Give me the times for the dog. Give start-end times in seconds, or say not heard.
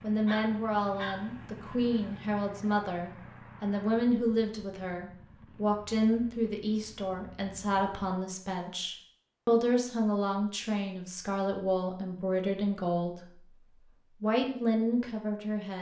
0.2-1.4.